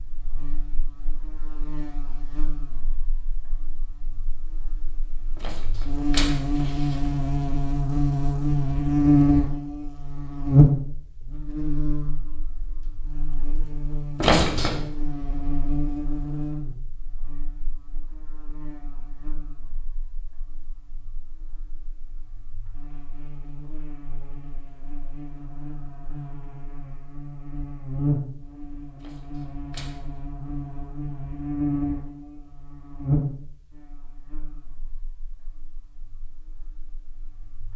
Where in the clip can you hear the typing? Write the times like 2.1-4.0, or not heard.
not heard.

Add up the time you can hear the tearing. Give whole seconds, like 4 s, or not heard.
3 s.